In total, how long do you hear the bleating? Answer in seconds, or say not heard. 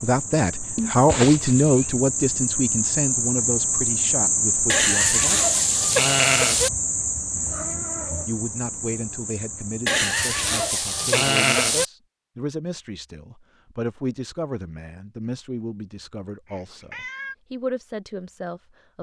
4 s.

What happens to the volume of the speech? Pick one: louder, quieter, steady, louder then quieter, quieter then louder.
quieter.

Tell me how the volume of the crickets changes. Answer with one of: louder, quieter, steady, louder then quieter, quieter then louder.
louder then quieter.